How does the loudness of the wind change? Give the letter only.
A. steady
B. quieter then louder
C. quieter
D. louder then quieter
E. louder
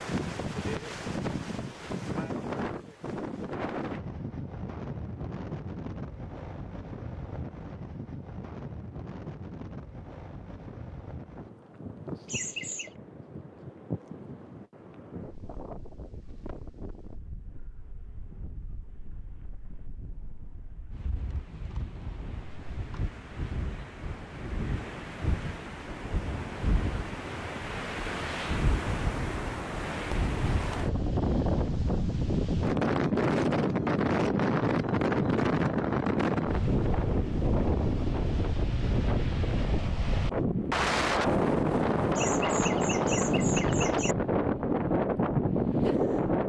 B.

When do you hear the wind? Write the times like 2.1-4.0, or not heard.
0.0-46.4.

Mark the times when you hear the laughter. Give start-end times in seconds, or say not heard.
12.2-12.9, 42.1-44.1.